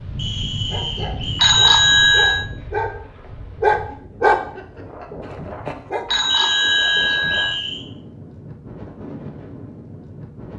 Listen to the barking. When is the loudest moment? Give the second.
4 s.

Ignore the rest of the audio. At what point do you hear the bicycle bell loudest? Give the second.
2 s.